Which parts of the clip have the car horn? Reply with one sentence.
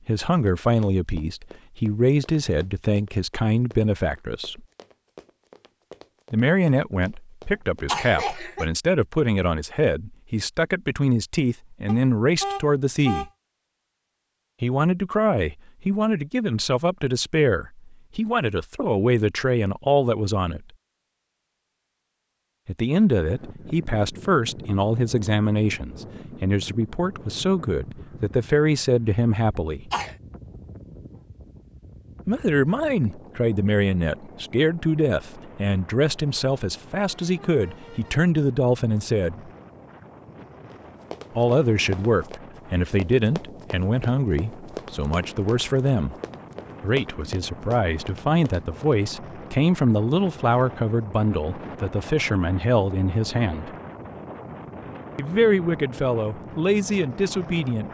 The car horn can be heard from 11.8 to 13.3 s and from 37.1 to 38.2 s.